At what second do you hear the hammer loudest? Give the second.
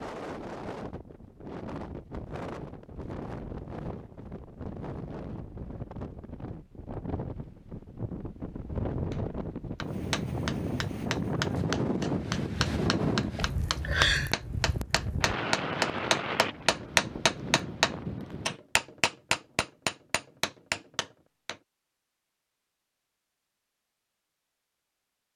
17 s.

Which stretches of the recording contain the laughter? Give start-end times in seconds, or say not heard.
13.3-14.3.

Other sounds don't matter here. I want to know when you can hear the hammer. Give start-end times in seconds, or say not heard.
9.1-21.6.